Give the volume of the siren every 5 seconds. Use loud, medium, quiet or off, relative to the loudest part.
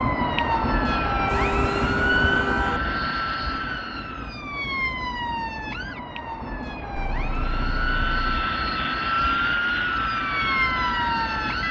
loud, medium, loud.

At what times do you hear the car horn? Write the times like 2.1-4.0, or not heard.
1.2-2.8, 7.0-8.5.